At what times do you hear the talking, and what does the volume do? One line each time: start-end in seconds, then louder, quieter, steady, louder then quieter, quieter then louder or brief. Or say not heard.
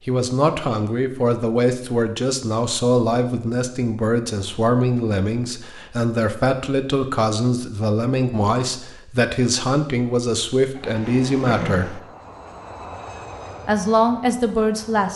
0.1-12.0 steady
13.7-15.1 brief.